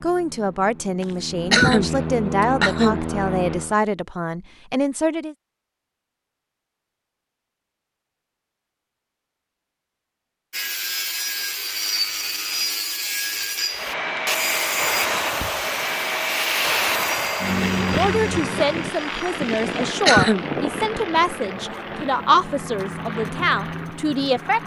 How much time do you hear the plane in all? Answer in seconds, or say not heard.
15 s.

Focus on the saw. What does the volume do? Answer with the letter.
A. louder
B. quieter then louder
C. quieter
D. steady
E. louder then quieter
C.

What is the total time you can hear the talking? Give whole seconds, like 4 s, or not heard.
12 s.